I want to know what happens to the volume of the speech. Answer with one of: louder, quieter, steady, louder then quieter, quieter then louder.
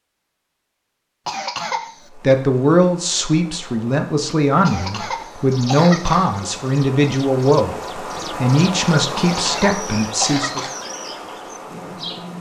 steady.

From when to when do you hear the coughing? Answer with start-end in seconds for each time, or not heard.
1.2-2.1, 4.7-6.3, 9.2-10.8.